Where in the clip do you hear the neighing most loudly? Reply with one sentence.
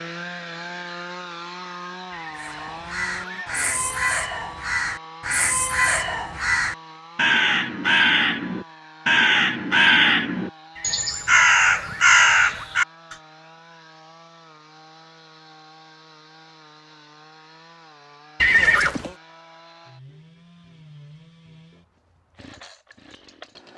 The loudest moment of the neighing is at 19 seconds.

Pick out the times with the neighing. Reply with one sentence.
The neighing can be heard from 2.1 to 3.5 s, from 10.8 to 12.7 s and from 18.4 to 19.1 s.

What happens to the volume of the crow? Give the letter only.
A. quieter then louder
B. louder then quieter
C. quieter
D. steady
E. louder
E.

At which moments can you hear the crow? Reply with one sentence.
The crow can be heard from 2.4 to 13.2 s.